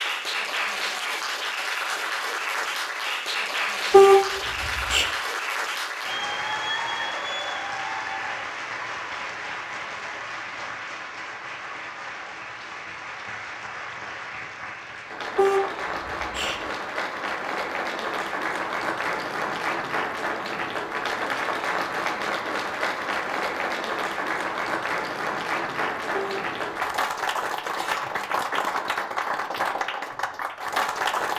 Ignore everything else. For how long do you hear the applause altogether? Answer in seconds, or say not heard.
31 s.